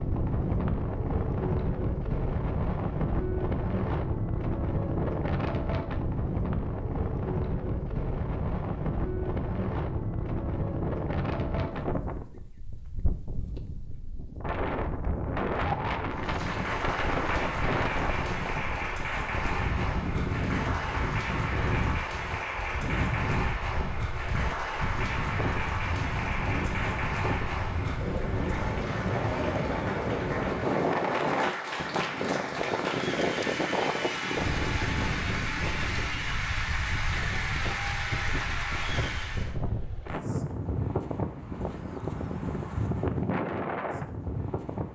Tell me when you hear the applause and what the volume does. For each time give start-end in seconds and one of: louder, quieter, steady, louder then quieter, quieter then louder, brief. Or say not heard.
16.1-39.5 steady.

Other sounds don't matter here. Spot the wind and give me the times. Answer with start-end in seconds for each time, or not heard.
0.0-44.8.